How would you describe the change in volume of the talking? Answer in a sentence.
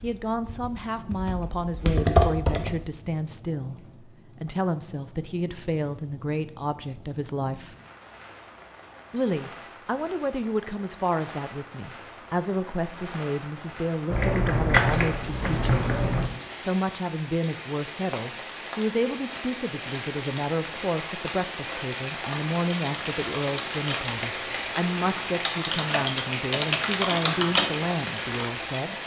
The loudness of the talking stays about the same.